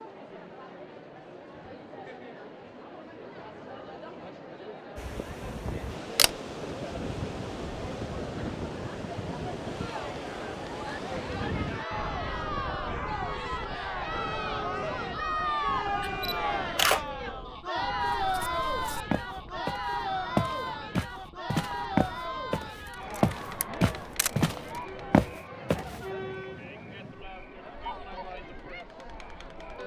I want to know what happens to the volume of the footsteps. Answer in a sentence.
The loudness of the footsteps goes up.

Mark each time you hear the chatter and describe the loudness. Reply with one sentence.
You can hear the chatter from 0.0 to 29.8 s, getting louder then quieter.